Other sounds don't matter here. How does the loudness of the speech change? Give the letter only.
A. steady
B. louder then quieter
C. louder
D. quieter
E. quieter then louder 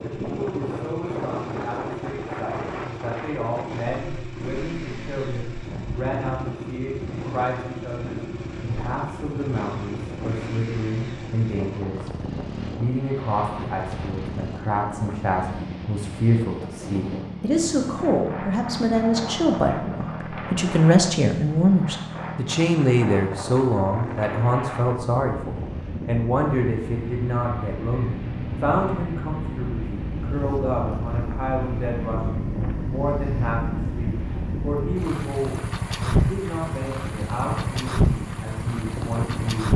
B.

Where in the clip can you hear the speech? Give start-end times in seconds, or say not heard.
0.0-39.7.